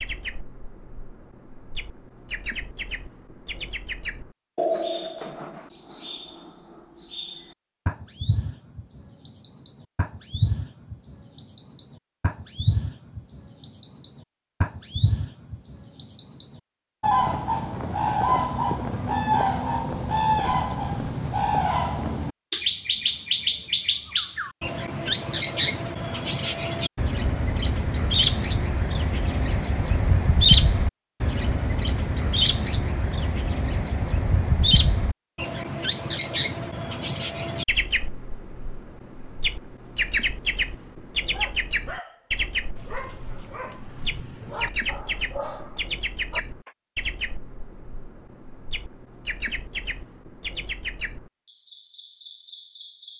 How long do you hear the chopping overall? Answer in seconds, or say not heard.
not heard.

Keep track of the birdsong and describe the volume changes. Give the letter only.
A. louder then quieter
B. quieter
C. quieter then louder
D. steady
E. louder
A.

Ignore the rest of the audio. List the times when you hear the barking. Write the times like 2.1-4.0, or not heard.
41.3-46.8.